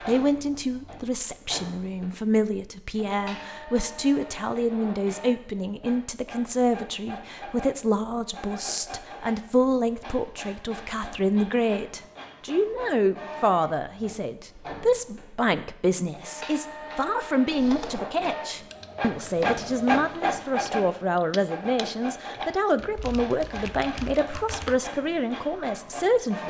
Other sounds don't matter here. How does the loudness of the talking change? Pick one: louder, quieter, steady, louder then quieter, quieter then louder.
steady.